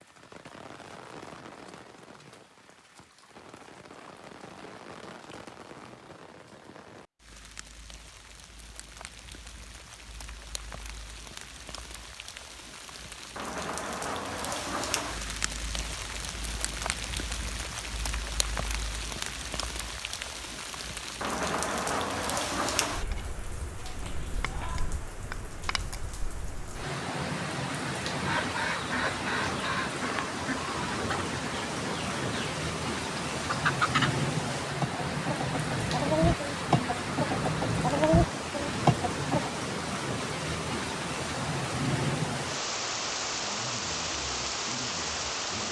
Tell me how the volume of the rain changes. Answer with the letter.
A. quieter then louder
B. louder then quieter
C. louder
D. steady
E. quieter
C.